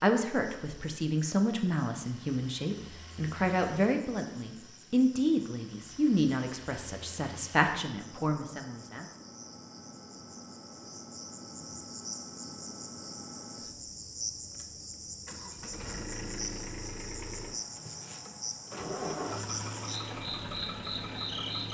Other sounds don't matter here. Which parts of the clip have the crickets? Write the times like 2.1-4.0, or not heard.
0.1-21.6.